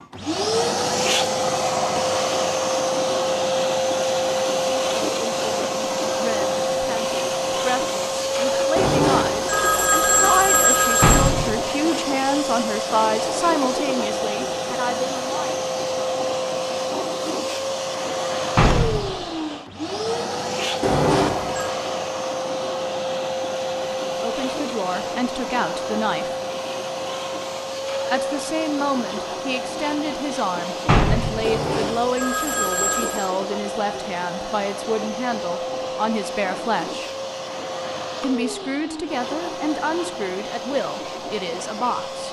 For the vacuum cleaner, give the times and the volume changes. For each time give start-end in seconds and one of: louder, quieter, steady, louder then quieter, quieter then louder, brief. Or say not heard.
0.0-42.2 quieter.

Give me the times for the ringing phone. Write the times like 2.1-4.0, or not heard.
8.8-11.3, 20.8-21.7, 31.4-33.3.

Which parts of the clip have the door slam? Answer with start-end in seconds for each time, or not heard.
11.0-11.5, 18.6-19.1, 30.9-31.4.